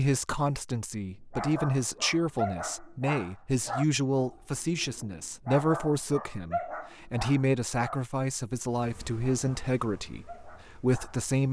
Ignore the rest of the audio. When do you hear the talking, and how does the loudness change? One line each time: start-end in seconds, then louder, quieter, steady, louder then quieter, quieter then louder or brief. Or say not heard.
0.0-11.4 steady.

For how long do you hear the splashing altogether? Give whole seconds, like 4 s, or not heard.
not heard.